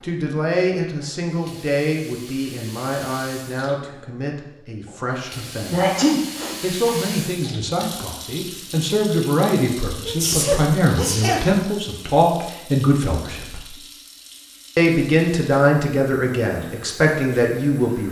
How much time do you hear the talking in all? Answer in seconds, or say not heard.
16 s.